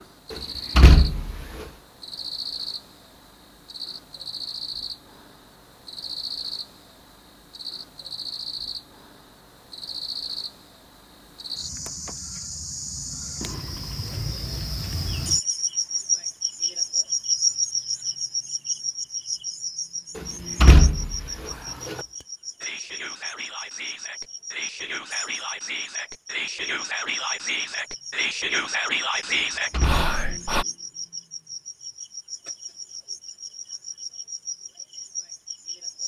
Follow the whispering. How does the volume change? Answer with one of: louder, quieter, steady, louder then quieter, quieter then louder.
louder.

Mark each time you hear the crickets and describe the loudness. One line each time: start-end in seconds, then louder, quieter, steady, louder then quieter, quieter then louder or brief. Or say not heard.
0.0-36.0 louder then quieter.